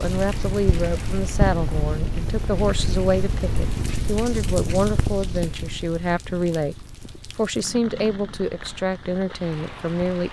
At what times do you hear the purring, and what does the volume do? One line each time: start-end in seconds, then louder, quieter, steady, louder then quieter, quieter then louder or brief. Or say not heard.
0.0-10.2 quieter.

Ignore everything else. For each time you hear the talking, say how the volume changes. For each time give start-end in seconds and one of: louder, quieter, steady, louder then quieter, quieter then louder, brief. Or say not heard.
0.0-6.8 steady
7.3-10.2 brief.